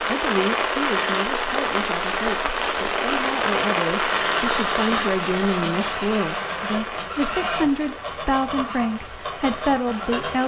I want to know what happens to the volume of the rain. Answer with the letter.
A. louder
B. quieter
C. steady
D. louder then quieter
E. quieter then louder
B.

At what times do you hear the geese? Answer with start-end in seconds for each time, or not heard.
4.0-10.3.